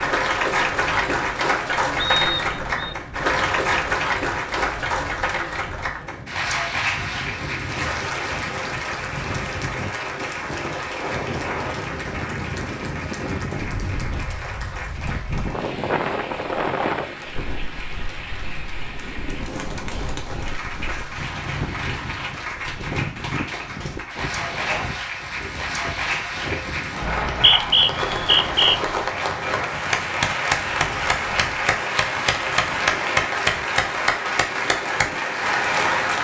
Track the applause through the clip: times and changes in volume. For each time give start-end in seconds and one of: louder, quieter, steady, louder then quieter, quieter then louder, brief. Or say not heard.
0.0-36.1 quieter then louder.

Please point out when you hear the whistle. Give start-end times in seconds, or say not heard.
1.9-3.0, 27.0-28.8.